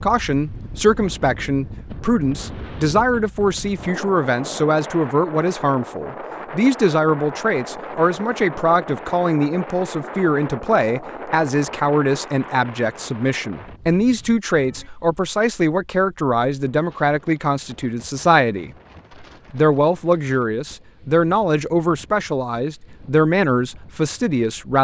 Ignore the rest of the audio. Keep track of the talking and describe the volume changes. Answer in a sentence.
The volume of the talking stays about the same.